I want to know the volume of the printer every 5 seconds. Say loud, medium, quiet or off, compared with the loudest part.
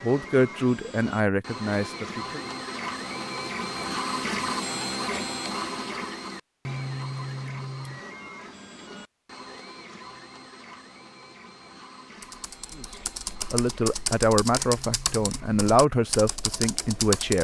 loud, loud, quiet, quiet.